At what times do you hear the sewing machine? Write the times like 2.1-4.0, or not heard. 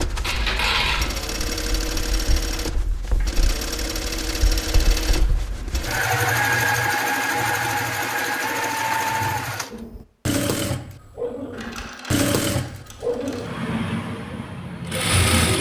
0.0-15.5.